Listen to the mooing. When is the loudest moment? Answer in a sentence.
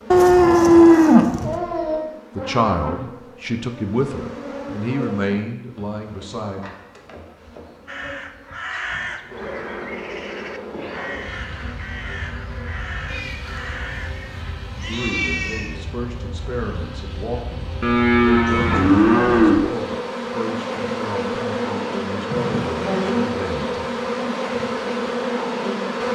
The loudest moment of the mooing is at 1 second.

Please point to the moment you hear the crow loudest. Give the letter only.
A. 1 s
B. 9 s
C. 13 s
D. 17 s
B.